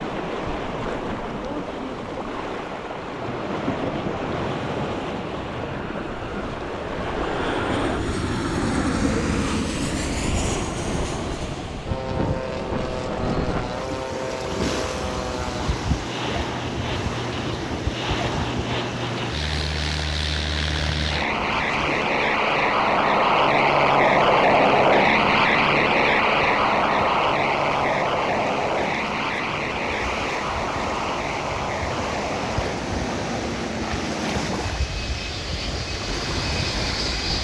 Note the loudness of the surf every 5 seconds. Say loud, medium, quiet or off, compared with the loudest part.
loud, loud, loud, loud, medium, medium, loud, loud.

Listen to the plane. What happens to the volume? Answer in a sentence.
The volume of the plane goes up, then down.